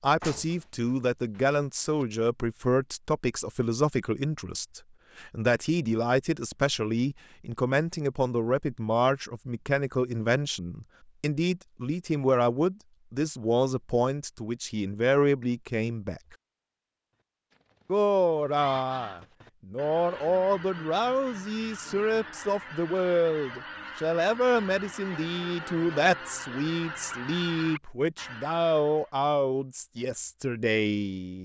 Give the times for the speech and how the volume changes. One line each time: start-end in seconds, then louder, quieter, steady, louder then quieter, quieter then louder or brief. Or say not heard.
0.0-16.4 steady
17.9-31.4 steady.